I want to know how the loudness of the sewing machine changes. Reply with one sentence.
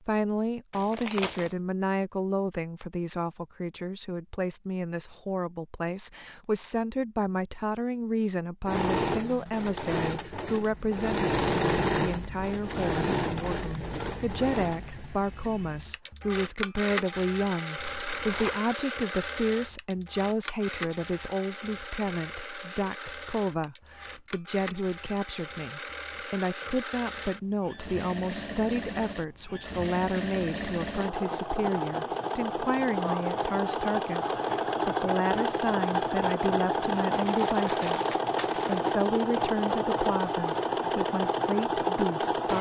The volume of the sewing machine goes down, then up.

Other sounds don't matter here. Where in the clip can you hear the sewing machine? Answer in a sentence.
The sewing machine can be heard from 8.7 to 42.5 s.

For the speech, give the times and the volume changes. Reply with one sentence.
The speech can be heard from 0.1 to 42.5 s, at a steady volume.